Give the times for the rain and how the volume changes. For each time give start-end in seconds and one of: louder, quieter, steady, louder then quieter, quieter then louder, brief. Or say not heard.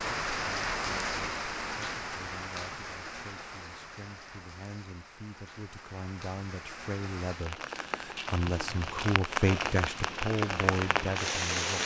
0.0-11.8 quieter then louder.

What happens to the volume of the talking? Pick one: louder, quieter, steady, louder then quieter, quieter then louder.
louder.